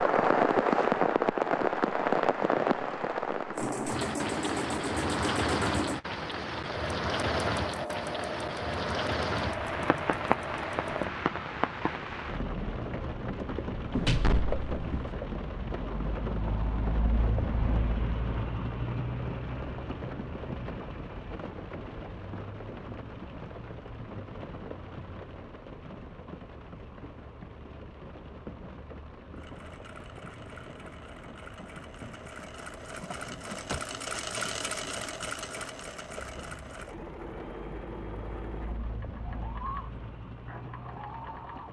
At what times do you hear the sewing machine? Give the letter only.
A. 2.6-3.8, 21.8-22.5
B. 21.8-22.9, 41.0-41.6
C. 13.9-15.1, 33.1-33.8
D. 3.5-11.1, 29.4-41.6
D.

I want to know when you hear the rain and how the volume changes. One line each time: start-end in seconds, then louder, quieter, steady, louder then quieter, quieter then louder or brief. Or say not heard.
0.0-41.6 quieter.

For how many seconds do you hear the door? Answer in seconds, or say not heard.
2 s.